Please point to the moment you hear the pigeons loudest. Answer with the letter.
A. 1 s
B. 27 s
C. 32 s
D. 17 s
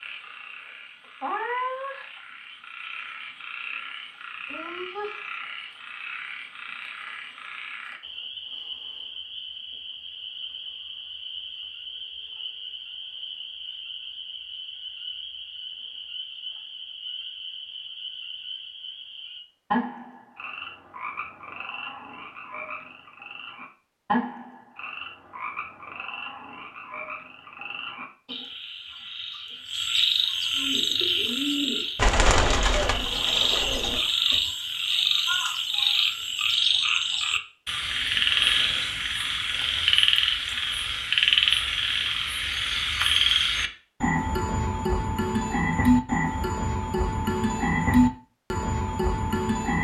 C.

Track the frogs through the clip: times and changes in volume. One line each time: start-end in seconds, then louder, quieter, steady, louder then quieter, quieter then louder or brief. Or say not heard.
0.0-49.8 louder.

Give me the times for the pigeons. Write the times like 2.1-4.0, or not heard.
30.6-34.4.